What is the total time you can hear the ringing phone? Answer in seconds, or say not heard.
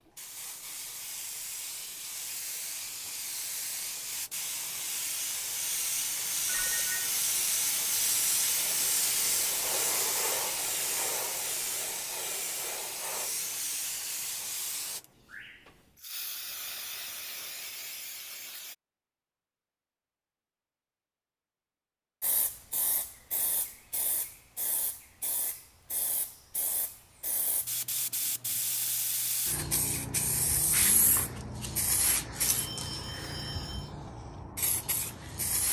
2 s.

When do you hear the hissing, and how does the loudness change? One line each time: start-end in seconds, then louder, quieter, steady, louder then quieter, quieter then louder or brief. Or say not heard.
0.1-18.8 louder then quieter
22.2-35.6 louder then quieter.